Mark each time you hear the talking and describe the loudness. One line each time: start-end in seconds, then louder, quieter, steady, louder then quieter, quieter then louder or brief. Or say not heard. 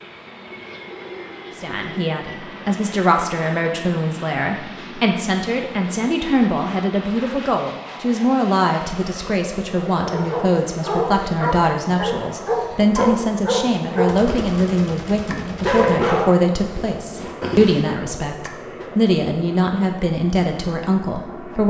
1.6-21.6 steady.